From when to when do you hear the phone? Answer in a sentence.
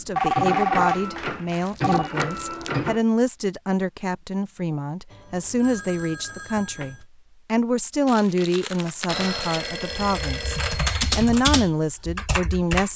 The phone can be heard from 0.1 to 2.1 s, from 5.1 to 7.0 s and from 9.1 to 11.3 s.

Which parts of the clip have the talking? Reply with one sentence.
You can hear the talking from 0.0 to 12.9 s.